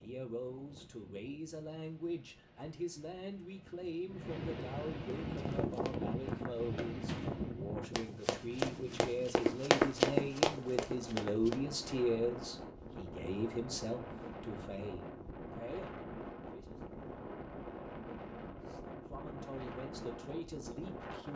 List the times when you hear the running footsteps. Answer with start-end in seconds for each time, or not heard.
5.2-11.7.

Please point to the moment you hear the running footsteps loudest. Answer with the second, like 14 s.
10 s.